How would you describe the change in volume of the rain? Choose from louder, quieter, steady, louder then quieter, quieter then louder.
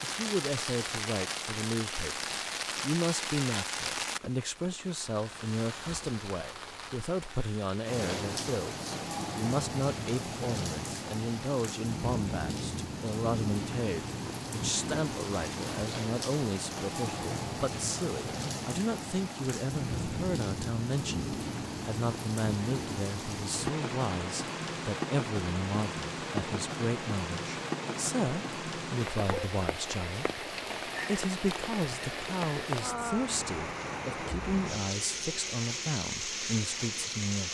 steady.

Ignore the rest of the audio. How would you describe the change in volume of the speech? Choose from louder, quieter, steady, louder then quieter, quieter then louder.
steady.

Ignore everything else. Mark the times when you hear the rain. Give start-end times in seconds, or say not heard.
0.0-37.4.